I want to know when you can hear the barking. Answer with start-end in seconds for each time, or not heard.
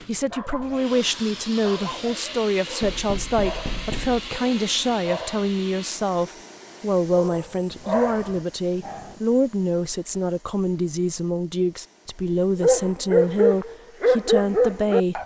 0.0-5.5, 7.1-9.2, 12.6-15.2.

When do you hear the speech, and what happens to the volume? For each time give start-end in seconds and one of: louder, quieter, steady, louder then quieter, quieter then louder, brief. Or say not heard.
0.1-15.2 steady.